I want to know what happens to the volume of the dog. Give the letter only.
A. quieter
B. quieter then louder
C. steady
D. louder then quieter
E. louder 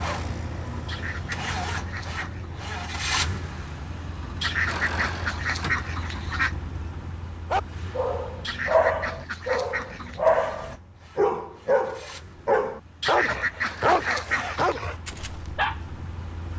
C.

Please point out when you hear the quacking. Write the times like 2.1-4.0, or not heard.
0.8-2.5, 4.4-6.5, 8.4-10.2, 13.0-14.8.